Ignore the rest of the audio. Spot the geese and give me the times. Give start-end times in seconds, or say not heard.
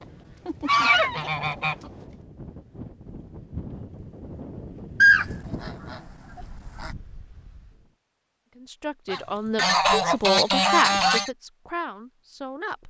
0.5-1.8, 5.0-6.9, 9.1-11.3.